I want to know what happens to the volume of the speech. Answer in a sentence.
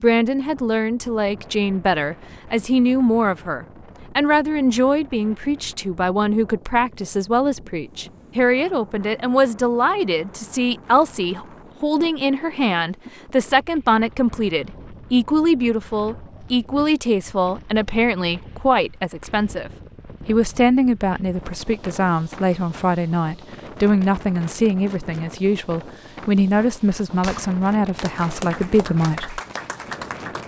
The loudness of the speech stays about the same.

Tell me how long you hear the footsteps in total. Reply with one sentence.
The footsteps can't be heard in this clip.